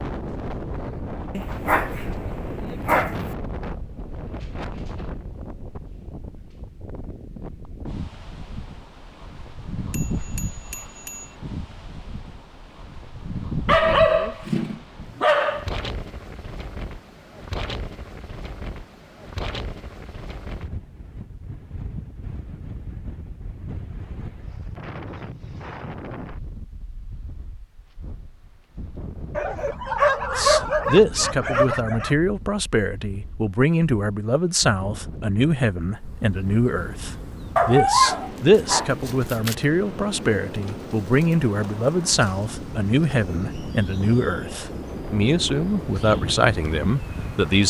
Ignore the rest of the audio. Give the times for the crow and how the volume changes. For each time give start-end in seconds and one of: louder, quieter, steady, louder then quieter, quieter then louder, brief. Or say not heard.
not heard.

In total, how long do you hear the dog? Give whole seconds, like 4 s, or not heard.
9 s.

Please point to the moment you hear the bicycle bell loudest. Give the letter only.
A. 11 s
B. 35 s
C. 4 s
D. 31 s
A.